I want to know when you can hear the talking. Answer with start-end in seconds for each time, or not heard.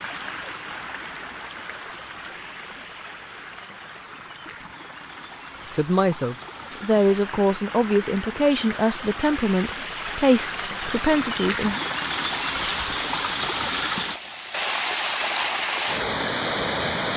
5.7-11.8.